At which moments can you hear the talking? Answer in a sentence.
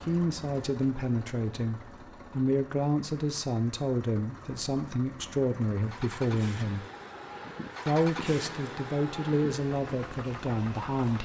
You can hear the talking from 0.0 to 6.8 s and from 7.8 to 11.2 s.